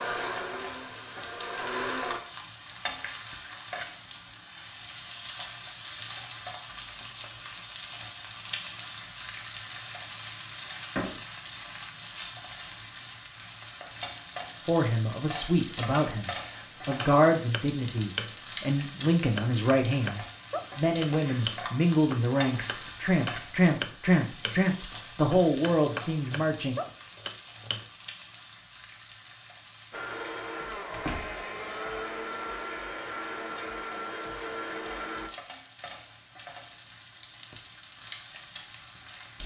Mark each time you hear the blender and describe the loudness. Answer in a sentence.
You can hear the blender briefly from 0.0 to 2.2 s; and from 29.9 to 35.3 s, at a steady volume.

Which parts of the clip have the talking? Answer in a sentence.
You can hear the talking from 14.7 to 26.8 s.